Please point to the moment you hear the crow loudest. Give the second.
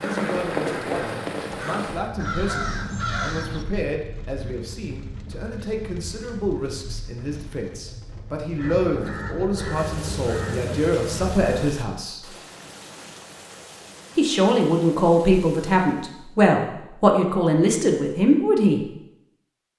3 s.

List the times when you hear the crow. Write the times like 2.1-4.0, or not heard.
0.0-3.6, 8.6-11.8.